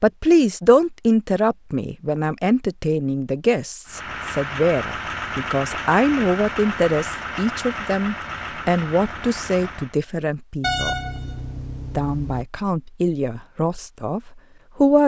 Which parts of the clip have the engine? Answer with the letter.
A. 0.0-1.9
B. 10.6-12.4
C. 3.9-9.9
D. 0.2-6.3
C.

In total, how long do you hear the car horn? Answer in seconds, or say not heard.
2 s.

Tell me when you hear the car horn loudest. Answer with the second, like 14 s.
11 s.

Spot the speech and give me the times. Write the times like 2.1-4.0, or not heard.
0.0-10.9, 11.9-15.0.